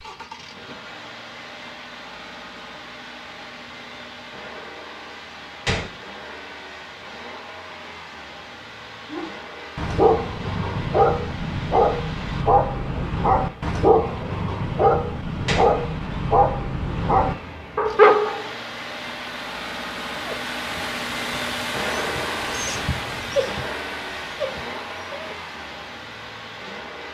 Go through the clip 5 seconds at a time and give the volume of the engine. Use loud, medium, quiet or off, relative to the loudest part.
medium, medium, medium, medium, loud, medium.